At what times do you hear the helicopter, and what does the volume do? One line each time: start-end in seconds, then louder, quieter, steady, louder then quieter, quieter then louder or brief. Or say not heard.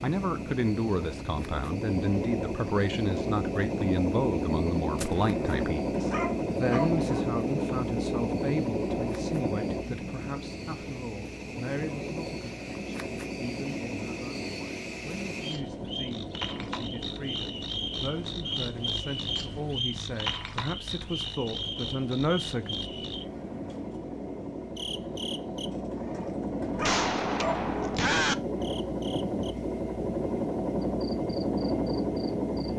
0.0-32.7 quieter then louder.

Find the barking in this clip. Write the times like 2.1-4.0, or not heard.
5.2-7.2, 25.9-27.7.